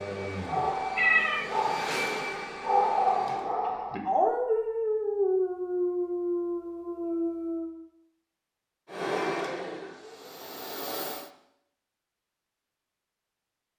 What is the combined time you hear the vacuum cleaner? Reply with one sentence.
The vacuum cleaner can be heard for 6 seconds in total.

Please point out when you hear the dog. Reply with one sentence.
You can hear the dog from 0.4 to 7.8 s.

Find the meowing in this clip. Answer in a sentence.
You can hear the meowing from 0.9 to 2.1 s.